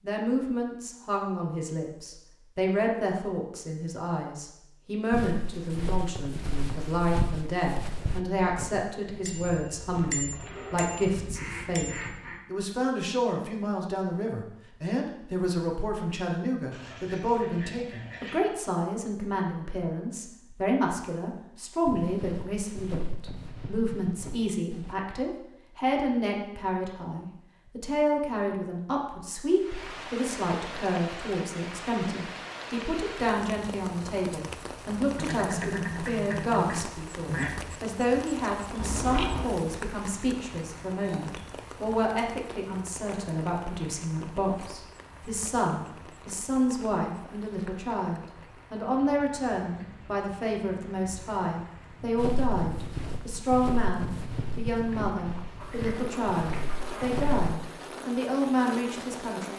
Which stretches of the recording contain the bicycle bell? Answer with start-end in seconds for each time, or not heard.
9.2-12.0, 38.8-39.5.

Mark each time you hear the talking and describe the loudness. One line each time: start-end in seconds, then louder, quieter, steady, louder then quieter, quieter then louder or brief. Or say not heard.
0.0-59.5 steady.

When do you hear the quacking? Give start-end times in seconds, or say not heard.
9.9-12.4, 16.7-18.4, 35.1-37.5, 55.0-57.2.